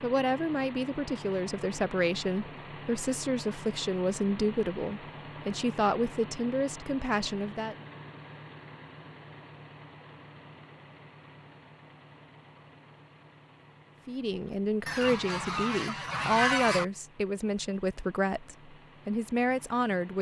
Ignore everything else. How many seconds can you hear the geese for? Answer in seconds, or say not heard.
2 s.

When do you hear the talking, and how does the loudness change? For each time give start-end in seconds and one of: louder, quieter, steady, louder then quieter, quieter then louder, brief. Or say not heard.
0.0-7.8 steady
14.1-20.1 steady.